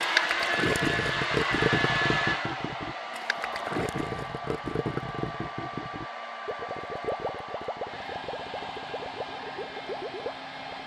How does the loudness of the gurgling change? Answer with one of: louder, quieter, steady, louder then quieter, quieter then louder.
quieter.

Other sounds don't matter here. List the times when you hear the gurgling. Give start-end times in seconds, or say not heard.
0.0-10.8.